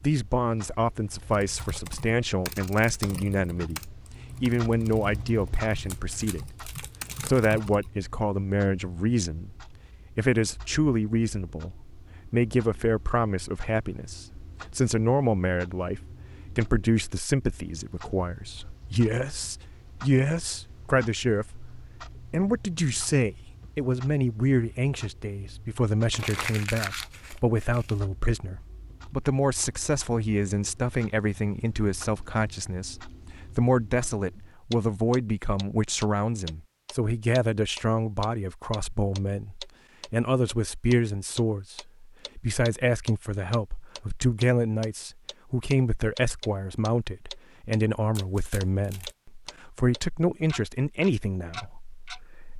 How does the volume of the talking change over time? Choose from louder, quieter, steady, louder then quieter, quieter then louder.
steady.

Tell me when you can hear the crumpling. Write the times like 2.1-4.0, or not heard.
5.9-7.4, 26.1-27.9, 48.1-49.1.